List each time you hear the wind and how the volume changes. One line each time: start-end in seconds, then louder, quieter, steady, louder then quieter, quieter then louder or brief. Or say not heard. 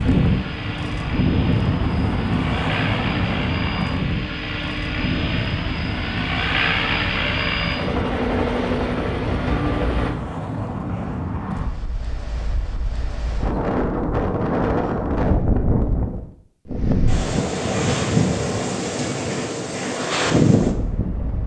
0.0-21.4 quieter then louder.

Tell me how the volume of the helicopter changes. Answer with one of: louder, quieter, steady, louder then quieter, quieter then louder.
louder.